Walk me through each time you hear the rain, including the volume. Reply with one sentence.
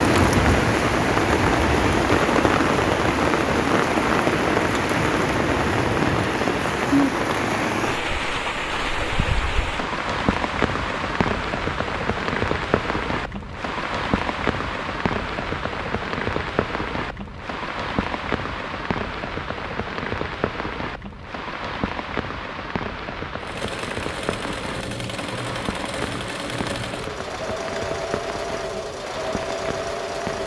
You can hear the rain from 0.0 to 30.4 s, getting quieter.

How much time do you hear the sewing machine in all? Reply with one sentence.
The sewing machine can be heard for 7 seconds in total.